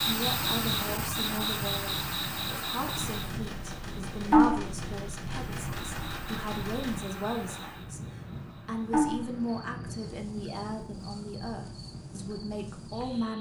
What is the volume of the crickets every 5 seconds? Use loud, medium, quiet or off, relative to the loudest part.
loud, medium, quiet.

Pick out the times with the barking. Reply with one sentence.
You can't hear the barking here.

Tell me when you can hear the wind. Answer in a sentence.
The wind can be heard from 0.0 to 13.3 s.